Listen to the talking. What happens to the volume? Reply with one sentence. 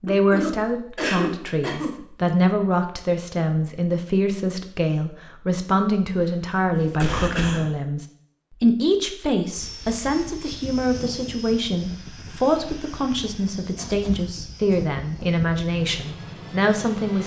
The volume of the talking stays about the same.